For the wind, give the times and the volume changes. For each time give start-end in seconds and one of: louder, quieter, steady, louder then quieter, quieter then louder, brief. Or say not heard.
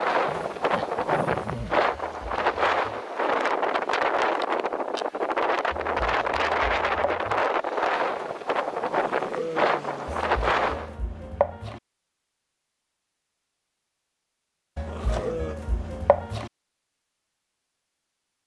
0.0-10.9 steady.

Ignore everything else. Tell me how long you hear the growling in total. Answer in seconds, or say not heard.
4 s.